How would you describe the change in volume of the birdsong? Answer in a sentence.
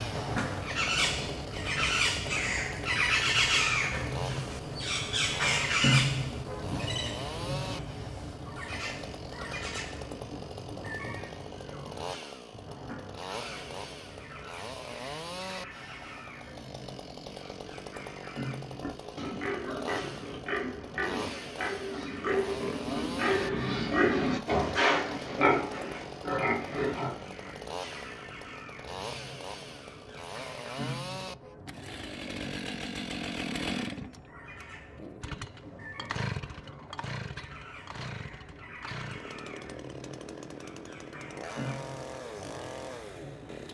The volume of the birdsong goes down.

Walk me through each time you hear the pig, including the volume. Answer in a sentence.
You can hear the pig from 18.7 to 27.6 s, getting louder then quieter.